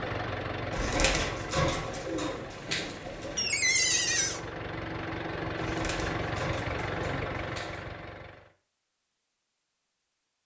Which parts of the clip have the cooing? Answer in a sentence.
The cooing can be heard from 0.7 to 3.5 s and from 5.5 to 8.0 s.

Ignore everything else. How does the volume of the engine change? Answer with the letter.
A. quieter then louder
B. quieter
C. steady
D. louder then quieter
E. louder
A.